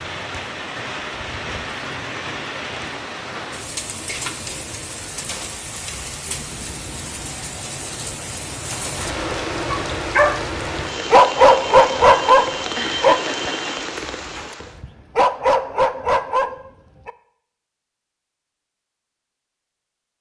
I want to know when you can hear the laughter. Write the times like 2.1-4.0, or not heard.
12.8-13.7.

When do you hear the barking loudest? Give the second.
11 s.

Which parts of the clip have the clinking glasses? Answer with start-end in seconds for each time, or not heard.
not heard.